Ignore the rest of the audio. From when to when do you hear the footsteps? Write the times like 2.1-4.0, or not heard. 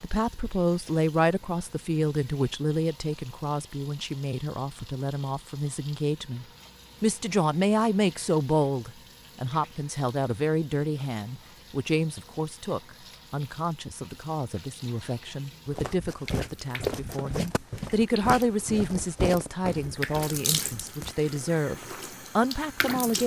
15.7-22.2.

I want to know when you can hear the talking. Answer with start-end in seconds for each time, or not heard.
0.0-23.2.